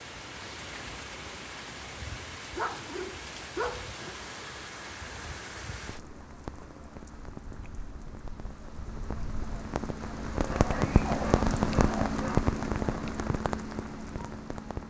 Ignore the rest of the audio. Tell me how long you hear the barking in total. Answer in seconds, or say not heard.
4 s.